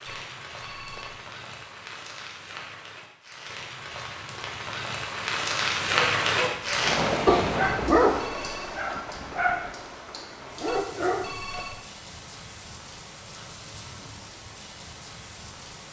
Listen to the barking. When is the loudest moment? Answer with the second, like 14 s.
8 s.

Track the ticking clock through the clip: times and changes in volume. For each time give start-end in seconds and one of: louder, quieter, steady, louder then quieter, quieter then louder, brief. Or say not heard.
not heard.